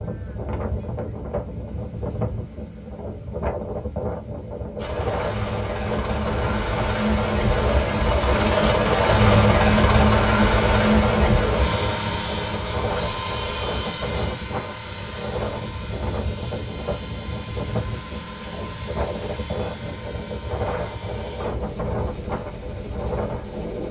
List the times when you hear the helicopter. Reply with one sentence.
The helicopter can be heard from 4.8 to 23.8 s.